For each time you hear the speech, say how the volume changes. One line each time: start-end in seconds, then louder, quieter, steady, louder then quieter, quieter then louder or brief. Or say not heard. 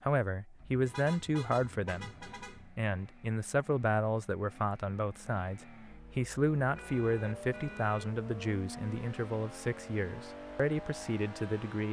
0.0-11.8 steady.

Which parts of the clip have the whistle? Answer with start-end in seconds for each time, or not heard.
not heard.